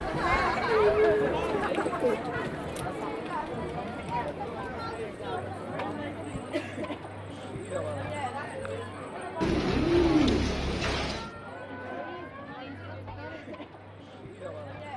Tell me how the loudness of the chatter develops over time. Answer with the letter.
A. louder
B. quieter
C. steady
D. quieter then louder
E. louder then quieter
B.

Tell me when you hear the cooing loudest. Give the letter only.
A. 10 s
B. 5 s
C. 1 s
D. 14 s
A.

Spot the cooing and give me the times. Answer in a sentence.
You can hear the cooing from 1.6 to 2.3 s and from 9.4 to 11.3 s.